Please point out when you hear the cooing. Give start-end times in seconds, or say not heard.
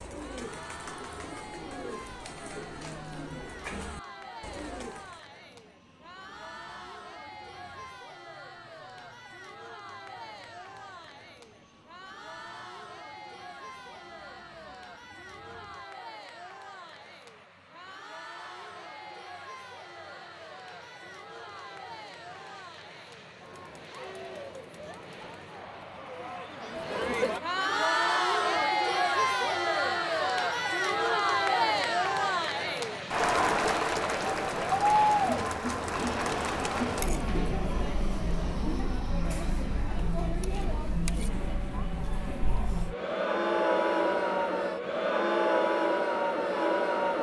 0.0-5.2.